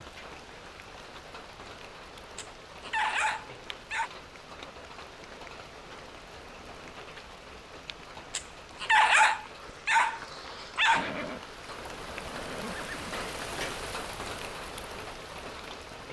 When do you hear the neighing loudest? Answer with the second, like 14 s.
11 s.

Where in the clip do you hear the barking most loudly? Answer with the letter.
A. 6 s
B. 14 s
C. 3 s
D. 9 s
D.